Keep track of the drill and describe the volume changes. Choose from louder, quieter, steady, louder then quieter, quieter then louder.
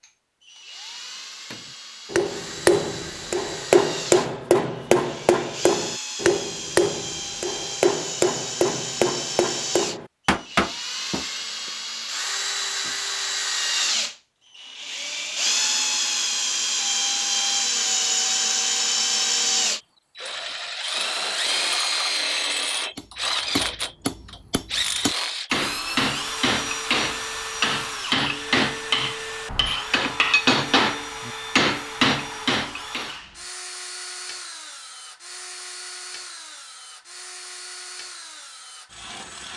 louder then quieter.